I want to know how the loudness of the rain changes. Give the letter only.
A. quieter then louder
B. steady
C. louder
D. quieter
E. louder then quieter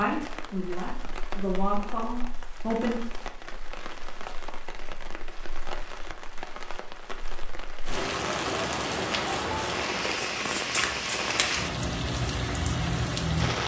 C.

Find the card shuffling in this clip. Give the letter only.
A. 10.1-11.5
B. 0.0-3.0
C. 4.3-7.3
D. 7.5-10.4
A.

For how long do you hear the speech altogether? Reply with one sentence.
The speech can be heard for 3 seconds in total.